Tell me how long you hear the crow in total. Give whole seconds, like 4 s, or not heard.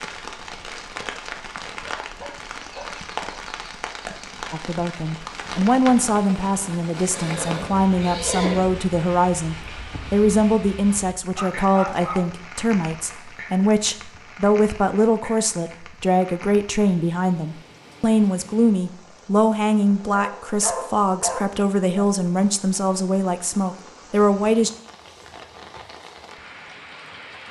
not heard.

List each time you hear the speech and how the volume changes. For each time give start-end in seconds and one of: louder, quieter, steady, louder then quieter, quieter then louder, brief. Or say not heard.
4.5-24.7 steady.